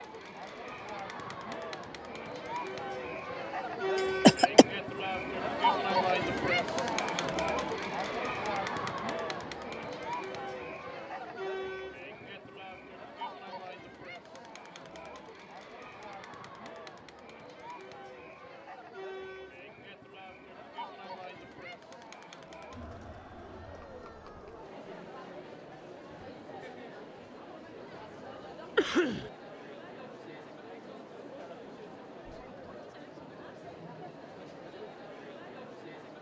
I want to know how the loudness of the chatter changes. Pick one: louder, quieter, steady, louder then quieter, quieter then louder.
quieter.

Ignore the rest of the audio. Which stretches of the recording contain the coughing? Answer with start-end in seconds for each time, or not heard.
4.2-4.7, 28.8-29.3.